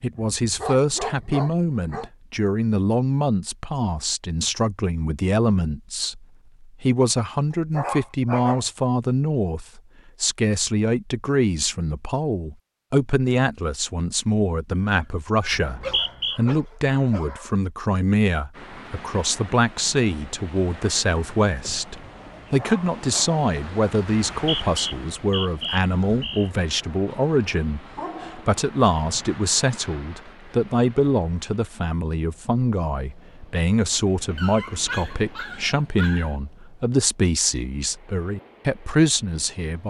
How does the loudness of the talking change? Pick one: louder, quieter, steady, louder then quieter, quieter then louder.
steady.